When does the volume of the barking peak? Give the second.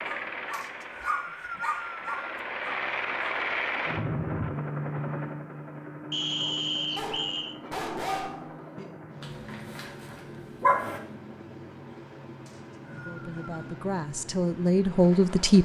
11 s.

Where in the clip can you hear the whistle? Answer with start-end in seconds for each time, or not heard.
0.5-2.4, 6.1-7.5, 12.4-13.7.